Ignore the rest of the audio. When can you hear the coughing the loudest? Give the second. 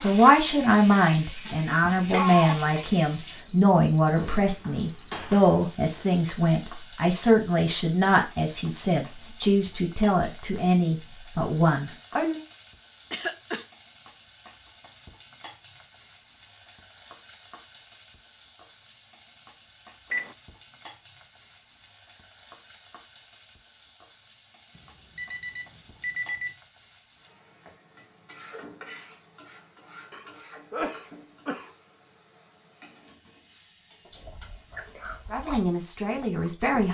2 s.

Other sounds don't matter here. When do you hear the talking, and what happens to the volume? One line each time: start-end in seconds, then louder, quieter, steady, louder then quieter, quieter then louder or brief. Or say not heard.
0.0-12.4 steady
35.3-36.9 brief.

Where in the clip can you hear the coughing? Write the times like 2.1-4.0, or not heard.
1.8-2.7, 13.1-13.7, 30.1-31.7.